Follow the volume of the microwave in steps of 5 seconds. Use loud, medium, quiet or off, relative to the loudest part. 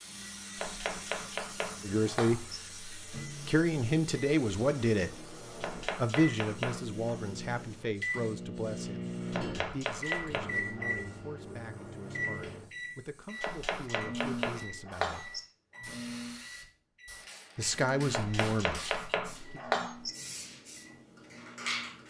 medium, loud, loud, medium, quiet.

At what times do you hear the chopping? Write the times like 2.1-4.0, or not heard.
0.6-2.6, 5.6-7.2, 9.3-10.9, 13.4-15.4, 18.1-20.1.